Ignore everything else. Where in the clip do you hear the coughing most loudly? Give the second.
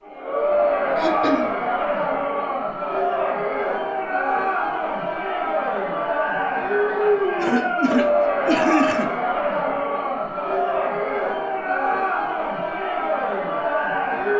9 s.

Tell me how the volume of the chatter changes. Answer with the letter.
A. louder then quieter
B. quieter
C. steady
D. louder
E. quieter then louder
C.